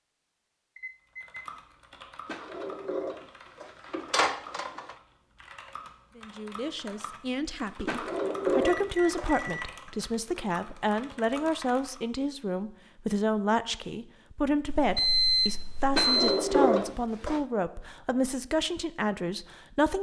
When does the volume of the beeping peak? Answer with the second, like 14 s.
15 s.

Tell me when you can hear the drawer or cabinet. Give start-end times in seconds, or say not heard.
2.2-5.0, 7.8-9.5, 15.9-17.4.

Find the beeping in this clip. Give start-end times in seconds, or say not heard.
0.8-1.4, 8.8-9.7, 14.7-16.4.